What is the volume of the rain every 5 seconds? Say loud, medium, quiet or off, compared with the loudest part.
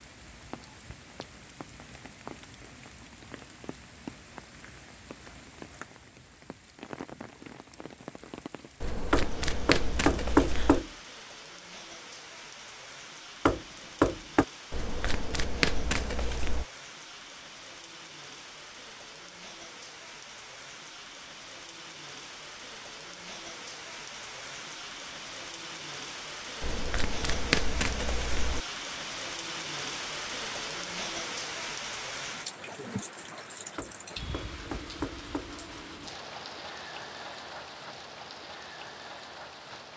medium, medium, medium, medium, medium, loud, loud, medium.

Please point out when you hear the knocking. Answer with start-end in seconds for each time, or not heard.
9.1-10.9, 13.4-14.4, 33.8-35.5.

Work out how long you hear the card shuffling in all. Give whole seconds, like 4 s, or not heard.
6 s.